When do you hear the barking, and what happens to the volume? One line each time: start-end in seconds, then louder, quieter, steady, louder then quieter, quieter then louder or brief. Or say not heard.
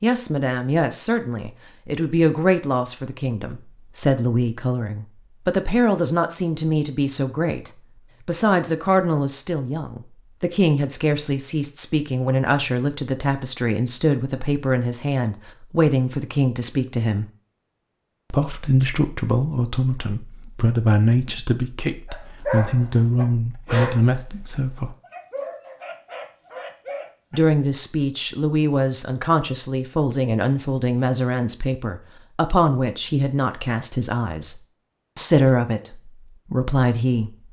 22.1-27.4 quieter then louder.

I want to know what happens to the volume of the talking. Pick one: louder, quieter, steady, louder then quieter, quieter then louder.
steady.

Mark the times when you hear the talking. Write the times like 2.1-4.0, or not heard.
0.0-17.2, 18.3-24.9, 27.3-37.3.